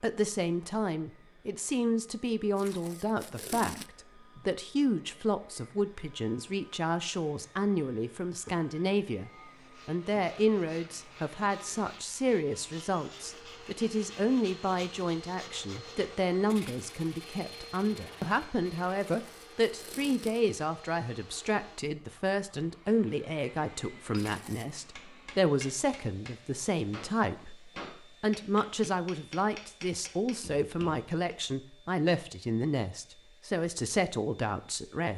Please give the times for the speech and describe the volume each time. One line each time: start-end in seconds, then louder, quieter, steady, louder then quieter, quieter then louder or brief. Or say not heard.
0.0-35.1 steady.